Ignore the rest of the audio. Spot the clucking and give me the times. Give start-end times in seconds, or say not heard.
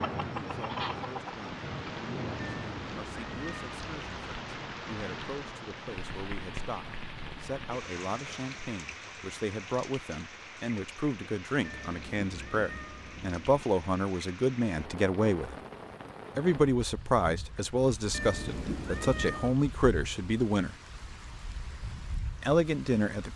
0.0-1.4.